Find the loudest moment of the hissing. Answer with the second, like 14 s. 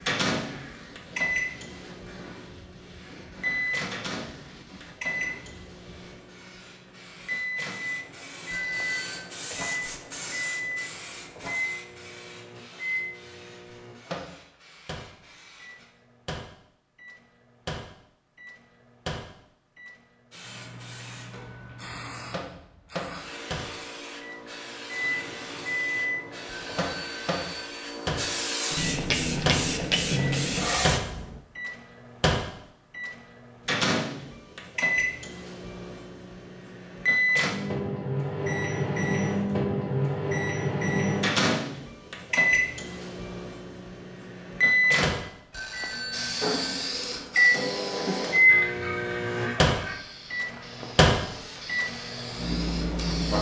30 s.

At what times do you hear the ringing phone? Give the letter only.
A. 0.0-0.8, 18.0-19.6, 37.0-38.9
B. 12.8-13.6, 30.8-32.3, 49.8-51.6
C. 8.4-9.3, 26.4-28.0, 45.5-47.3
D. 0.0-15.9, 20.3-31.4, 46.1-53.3
C.